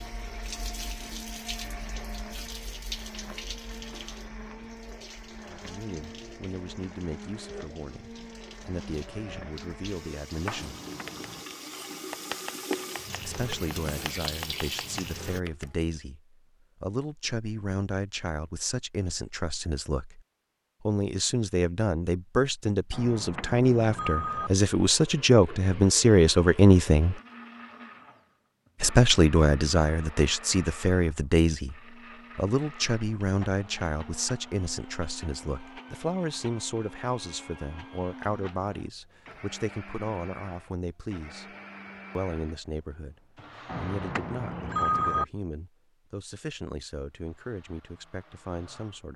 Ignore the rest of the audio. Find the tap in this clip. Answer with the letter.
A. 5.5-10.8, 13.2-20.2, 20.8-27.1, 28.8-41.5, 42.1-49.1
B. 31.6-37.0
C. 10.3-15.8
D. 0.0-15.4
D.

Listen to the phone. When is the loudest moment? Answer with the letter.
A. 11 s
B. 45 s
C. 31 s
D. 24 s
B.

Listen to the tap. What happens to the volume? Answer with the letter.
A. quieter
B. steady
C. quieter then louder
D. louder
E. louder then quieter
C.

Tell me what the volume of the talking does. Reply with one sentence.
The loudness of the talking goes up, then down.